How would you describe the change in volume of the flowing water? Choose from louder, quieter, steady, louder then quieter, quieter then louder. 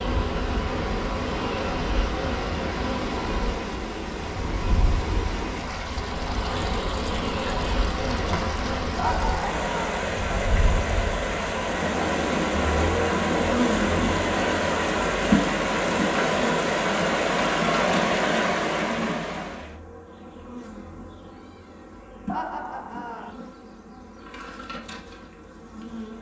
louder.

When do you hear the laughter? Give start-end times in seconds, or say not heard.
8.9-10.0, 22.2-23.3.